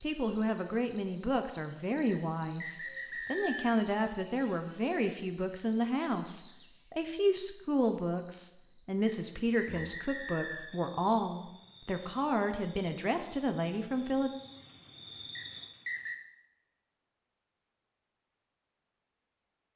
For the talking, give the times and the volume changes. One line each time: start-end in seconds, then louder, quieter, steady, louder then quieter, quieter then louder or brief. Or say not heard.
0.0-14.3 steady.